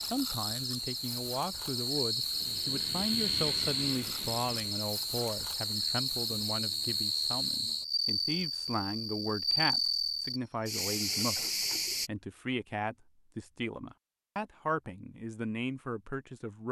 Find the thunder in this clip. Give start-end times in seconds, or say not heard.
not heard.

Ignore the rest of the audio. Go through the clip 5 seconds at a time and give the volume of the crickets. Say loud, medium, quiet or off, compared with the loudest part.
loud, loud, loud, off.